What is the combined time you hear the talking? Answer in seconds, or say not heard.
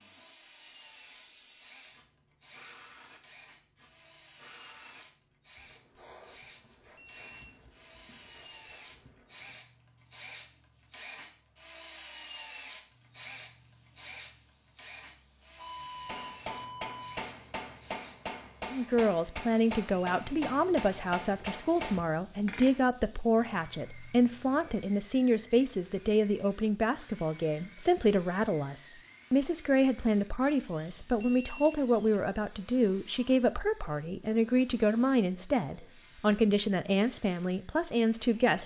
20 s.